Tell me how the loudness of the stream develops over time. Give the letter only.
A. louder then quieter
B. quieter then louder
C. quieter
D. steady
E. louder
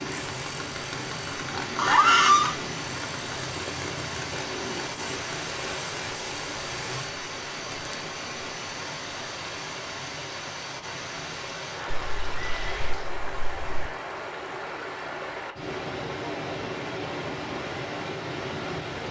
D.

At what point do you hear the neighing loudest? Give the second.
2 s.